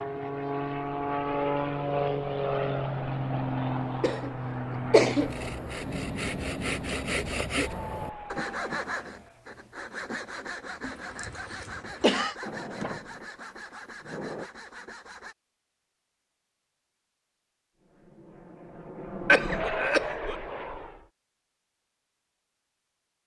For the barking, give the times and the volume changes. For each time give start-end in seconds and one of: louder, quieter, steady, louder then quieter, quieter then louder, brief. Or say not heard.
not heard.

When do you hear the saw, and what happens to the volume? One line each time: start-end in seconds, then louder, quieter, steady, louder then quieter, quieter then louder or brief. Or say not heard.
5.2-15.3 quieter.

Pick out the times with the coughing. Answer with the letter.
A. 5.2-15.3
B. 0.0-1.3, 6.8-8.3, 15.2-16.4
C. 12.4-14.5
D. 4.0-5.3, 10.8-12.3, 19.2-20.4
D.